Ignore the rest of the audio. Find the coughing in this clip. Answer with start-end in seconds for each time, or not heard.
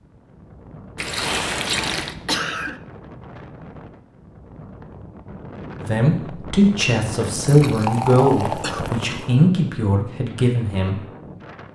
2.0-2.8, 8.6-9.2.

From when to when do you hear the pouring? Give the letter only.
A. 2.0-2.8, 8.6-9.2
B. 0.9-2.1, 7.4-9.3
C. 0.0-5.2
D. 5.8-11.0
B.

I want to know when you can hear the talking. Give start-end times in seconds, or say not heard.
5.8-11.0.